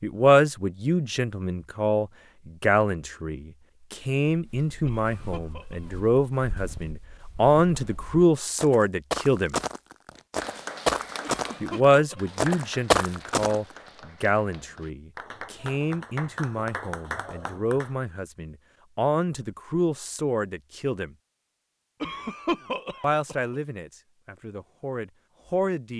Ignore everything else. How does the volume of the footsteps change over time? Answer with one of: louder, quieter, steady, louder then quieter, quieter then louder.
louder.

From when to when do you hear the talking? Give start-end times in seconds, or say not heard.
0.0-9.6, 11.6-21.1, 23.0-25.9.